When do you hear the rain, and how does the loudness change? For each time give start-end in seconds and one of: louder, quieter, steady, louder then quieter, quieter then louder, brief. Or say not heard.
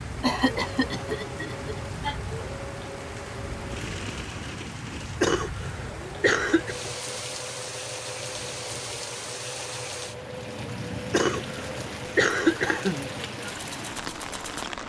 0.0-14.8 steady.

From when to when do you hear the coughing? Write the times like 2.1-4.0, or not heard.
0.2-2.1, 5.2-6.8, 11.1-13.1.